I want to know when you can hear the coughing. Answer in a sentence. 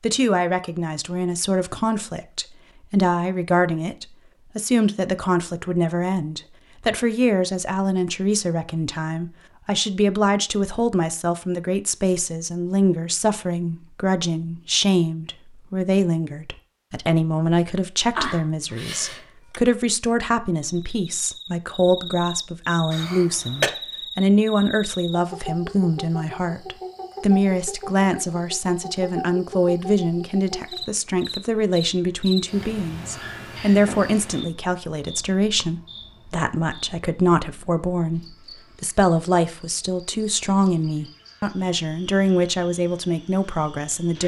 The coughing can be heard from 18.1 to 19.6 s and from 22.9 to 23.7 s.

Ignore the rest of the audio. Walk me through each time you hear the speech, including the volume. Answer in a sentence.
The speech can be heard from 0.0 to 44.2 s, at a steady volume.